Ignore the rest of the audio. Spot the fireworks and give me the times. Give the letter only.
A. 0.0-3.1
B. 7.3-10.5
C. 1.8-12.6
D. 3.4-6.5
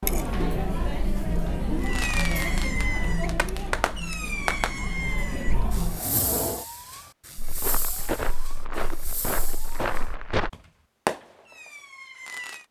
C.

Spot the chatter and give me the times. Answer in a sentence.
You can hear the chatter from 0.0 to 6.7 s.